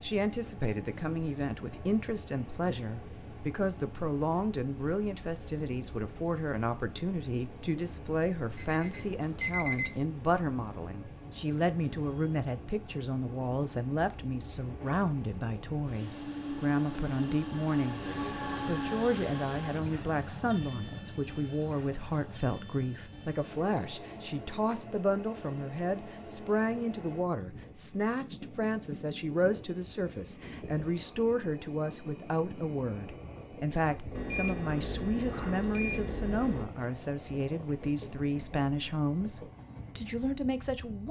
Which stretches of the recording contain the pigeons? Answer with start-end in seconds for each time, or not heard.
not heard.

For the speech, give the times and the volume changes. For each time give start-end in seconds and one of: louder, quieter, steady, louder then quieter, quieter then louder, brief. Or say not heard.
0.0-18.1 steady
18.6-41.0 steady.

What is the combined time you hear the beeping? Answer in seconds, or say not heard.
4 s.